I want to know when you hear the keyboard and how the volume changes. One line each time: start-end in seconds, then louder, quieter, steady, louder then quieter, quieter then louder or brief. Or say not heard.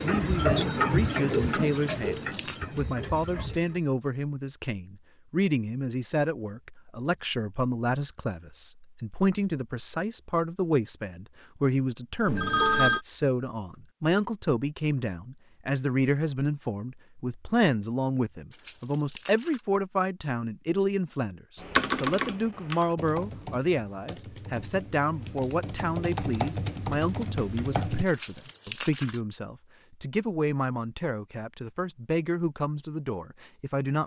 21.6-28.1 quieter then louder.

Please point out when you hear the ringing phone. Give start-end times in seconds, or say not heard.
12.2-13.0.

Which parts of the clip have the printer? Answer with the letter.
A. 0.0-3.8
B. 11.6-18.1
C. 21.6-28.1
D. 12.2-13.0
A.